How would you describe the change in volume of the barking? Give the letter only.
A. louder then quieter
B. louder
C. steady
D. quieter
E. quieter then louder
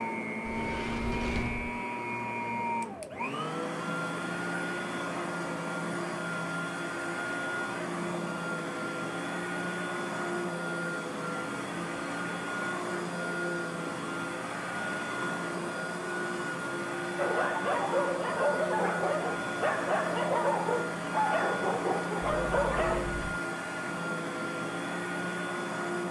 C.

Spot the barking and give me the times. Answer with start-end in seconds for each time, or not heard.
17.1-23.1.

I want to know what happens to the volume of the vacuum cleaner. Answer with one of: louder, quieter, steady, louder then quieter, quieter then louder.
steady.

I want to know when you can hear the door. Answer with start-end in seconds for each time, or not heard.
0.5-1.7, 22.2-23.4.